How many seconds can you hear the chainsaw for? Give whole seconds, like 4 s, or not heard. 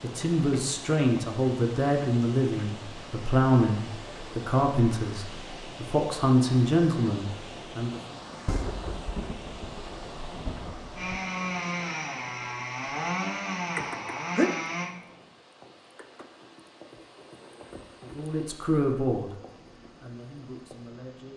4 s.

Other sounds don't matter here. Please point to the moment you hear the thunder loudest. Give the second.
9 s.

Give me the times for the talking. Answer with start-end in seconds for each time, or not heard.
0.0-8.0, 18.1-21.3.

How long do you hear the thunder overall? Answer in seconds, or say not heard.
3 s.